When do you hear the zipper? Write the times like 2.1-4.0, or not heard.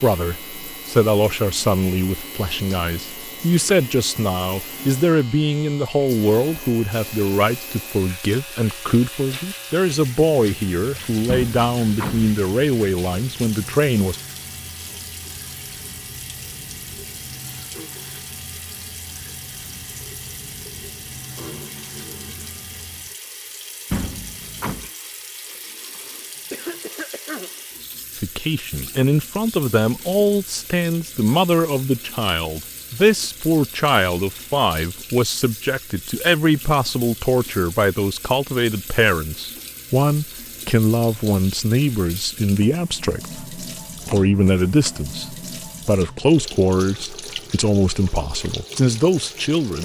not heard.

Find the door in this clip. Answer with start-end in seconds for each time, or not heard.
11.2-12.3, 23.9-24.9, 44.0-45.0.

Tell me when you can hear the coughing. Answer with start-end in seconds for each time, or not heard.
25.9-27.6.